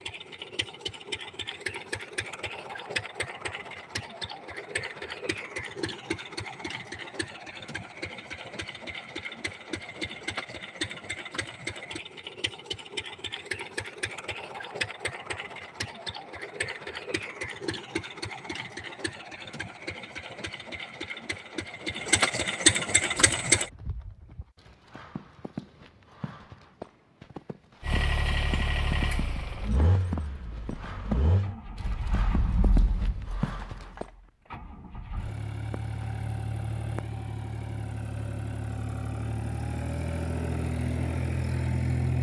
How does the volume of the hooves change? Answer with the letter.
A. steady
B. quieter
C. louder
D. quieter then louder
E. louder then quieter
C.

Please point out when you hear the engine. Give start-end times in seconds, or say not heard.
0.0-23.7, 27.8-42.1.